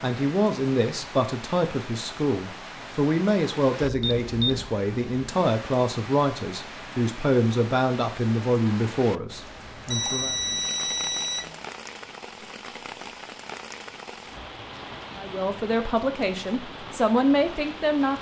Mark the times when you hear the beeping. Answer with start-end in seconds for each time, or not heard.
3.8-4.7, 9.8-11.6.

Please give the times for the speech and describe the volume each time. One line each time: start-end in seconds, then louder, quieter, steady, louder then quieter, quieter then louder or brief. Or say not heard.
0.0-10.3 steady
15.2-18.1 brief.